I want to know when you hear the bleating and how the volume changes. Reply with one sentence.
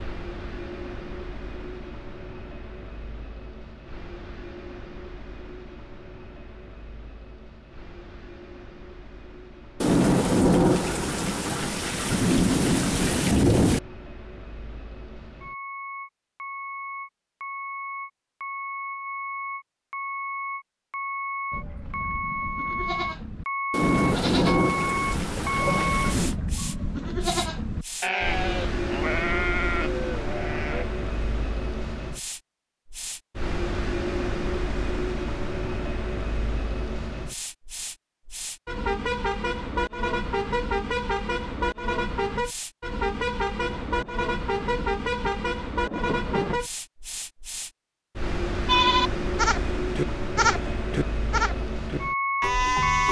The bleating can be heard from 21.5 to 30.9 s, getting louder; and from 48.6 to 53.0 s, at a steady volume.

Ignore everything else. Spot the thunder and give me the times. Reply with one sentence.
You can hear the thunder from 9.8 to 13.8 s, from 23.7 to 26.4 s and from 43.6 to 46.6 s.